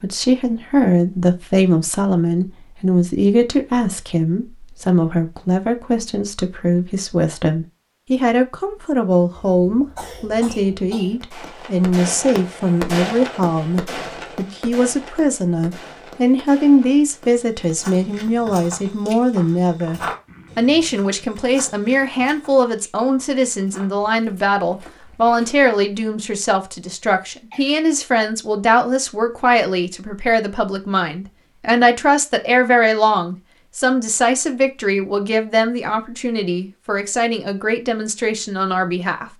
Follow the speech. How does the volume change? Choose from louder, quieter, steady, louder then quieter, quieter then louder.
steady.